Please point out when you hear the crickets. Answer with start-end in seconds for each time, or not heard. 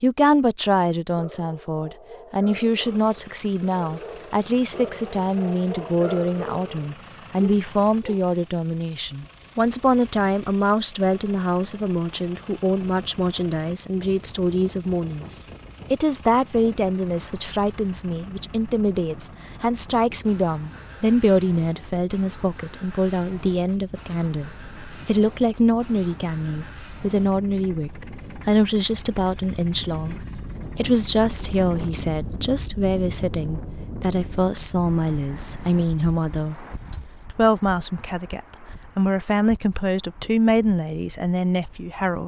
not heard.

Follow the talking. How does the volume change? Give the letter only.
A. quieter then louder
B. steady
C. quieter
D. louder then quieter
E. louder
B.